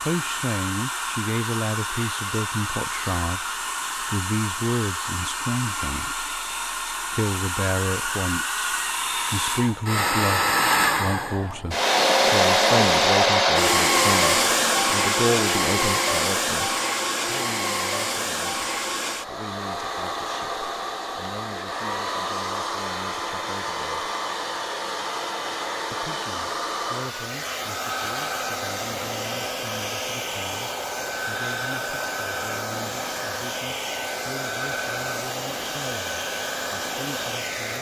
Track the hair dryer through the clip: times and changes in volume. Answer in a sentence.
The hair dryer can be heard from 0.0 to 37.7 s, getting louder then quieter.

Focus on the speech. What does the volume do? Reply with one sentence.
The volume of the speech goes down.